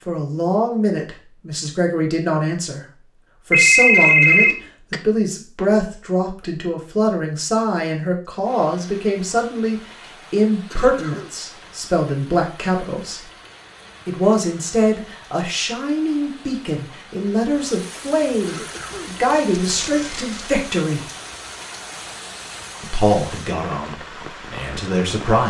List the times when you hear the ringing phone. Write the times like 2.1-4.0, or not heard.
3.5-5.0, 19.6-20.6.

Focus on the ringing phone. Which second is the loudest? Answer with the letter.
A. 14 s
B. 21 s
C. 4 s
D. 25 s
C.